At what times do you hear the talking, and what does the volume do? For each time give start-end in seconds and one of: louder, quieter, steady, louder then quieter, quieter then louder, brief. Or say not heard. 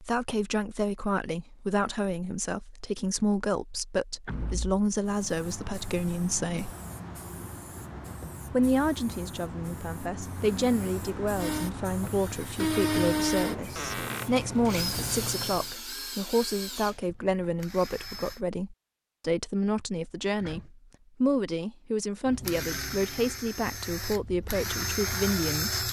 0.0-6.7 steady
8.5-25.8 steady.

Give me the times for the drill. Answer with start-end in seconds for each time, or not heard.
11.3-18.4, 22.2-25.8.